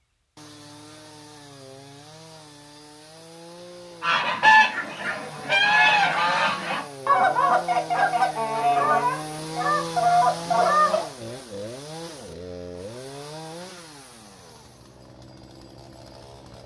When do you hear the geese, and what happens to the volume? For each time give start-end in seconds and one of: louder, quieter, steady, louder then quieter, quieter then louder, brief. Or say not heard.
4.0-11.1 steady.